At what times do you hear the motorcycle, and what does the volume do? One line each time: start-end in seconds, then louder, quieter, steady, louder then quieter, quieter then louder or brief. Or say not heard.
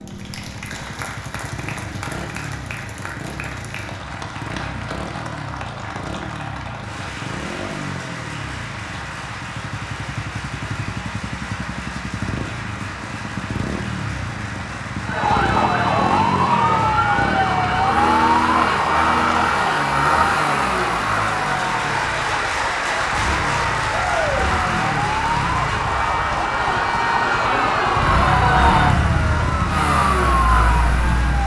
0.0-31.4 louder.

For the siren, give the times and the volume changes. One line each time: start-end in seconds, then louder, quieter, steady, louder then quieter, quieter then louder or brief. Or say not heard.
15.0-31.4 quieter then louder.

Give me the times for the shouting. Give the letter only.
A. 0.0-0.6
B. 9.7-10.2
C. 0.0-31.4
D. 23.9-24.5
D.